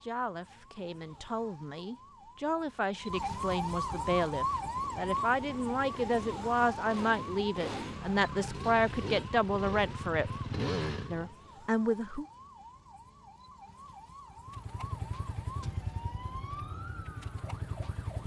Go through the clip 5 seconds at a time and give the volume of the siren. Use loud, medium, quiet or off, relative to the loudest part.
loud, loud, quiet, medium.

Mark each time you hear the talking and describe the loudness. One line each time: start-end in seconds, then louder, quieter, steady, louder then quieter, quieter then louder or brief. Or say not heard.
0.0-10.3 louder
11.1-12.2 brief.